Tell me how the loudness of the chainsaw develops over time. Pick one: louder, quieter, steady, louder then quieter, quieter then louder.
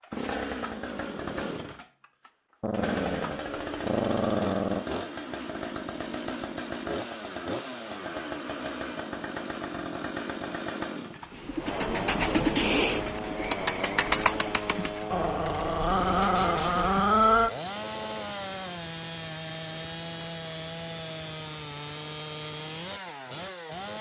steady.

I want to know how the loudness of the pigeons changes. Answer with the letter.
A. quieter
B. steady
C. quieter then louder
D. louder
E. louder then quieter
A.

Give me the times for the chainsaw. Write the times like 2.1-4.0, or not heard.
0.0-23.9.